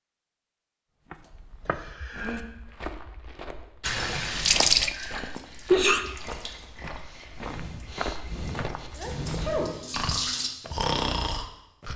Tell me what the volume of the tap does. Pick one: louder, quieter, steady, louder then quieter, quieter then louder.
quieter then louder.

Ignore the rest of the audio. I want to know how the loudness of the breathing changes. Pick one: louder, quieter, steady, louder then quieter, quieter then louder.
louder.